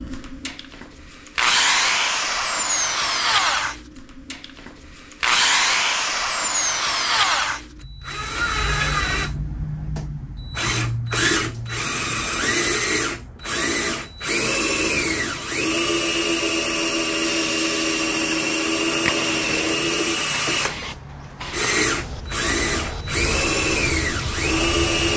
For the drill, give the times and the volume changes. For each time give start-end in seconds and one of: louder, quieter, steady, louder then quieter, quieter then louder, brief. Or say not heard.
0.0-25.1 steady.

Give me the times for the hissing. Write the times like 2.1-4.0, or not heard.
17.2-25.1.